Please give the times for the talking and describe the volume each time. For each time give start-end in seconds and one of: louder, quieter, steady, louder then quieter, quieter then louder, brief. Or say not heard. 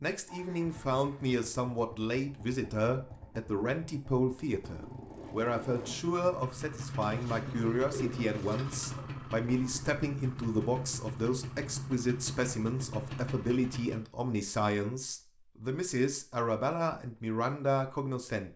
0.0-18.5 steady.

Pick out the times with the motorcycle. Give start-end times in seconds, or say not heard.
0.1-14.1.